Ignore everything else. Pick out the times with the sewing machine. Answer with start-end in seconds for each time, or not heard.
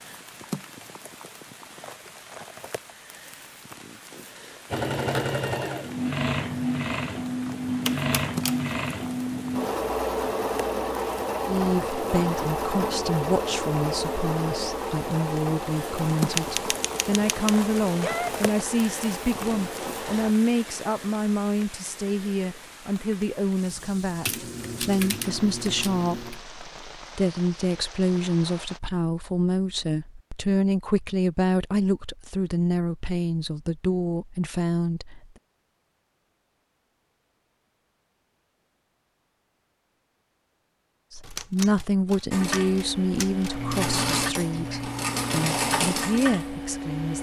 4.7-20.4, 42.3-47.1.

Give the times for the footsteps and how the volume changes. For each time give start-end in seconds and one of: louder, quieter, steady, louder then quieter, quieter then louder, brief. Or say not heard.
not heard.